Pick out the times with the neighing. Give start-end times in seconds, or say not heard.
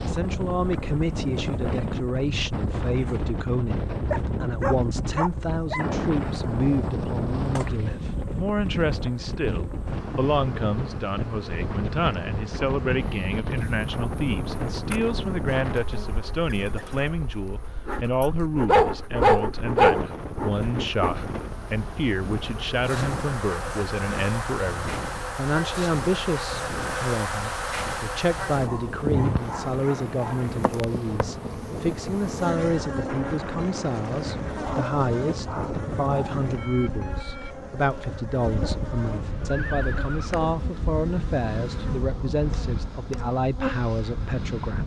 39.5-40.4.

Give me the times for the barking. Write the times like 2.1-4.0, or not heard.
4.1-6.0, 18.6-20.1, 28.6-30.5, 34.5-36.4.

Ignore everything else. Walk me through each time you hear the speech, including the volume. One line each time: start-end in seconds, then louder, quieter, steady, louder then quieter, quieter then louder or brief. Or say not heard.
0.0-44.8 steady.